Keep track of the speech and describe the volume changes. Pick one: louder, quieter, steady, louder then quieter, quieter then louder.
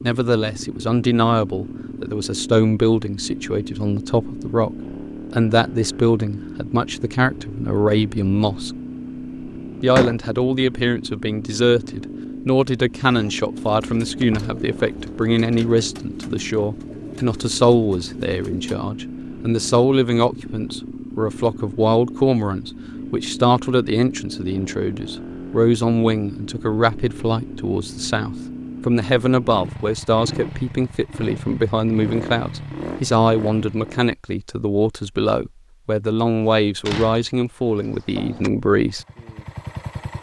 steady.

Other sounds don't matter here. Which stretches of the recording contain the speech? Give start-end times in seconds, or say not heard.
0.0-8.8, 9.8-39.0.